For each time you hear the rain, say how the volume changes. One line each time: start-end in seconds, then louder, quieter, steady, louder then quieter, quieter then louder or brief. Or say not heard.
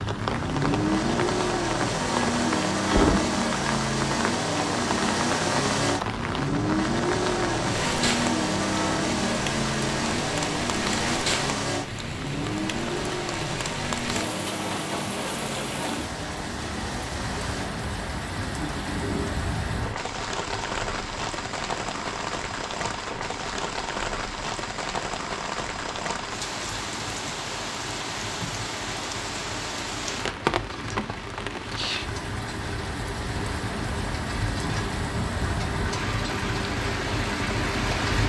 0.0-38.2 steady.